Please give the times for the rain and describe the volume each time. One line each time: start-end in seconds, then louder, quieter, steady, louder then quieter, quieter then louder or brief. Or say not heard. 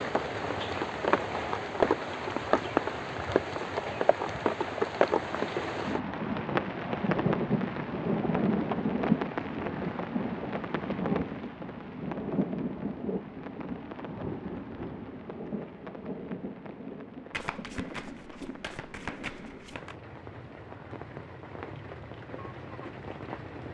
0.0-23.6 quieter.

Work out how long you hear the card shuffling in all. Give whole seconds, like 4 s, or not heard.
3 s.